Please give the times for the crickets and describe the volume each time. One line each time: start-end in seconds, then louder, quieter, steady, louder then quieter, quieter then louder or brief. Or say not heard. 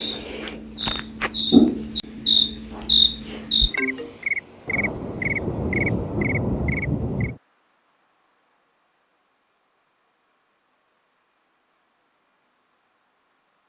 0.0-13.6 quieter.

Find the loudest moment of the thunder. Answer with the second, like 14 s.
6 s.